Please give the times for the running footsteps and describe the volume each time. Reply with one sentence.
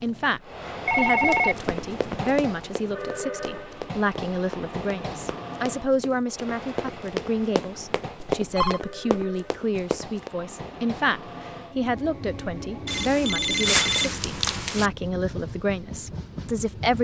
You can hear the running footsteps from 1.2 to 10.3 s, getting quieter then louder.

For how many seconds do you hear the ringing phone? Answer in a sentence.
You can hear the ringing phone for 4 seconds altogether.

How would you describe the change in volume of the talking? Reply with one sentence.
The volume of the talking stays about the same.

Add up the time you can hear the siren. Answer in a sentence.
You can't hear the siren here.